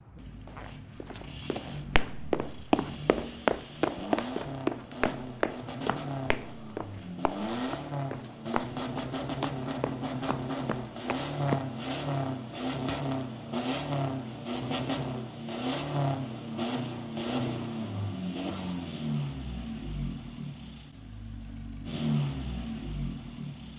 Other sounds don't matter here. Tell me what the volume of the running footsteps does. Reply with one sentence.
The loudness of the running footsteps goes down.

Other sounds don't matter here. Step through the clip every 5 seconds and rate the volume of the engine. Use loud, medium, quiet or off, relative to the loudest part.
medium, loud, loud, loud, loud.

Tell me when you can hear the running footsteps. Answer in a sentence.
You can hear the running footsteps from 0.6 to 11.6 s.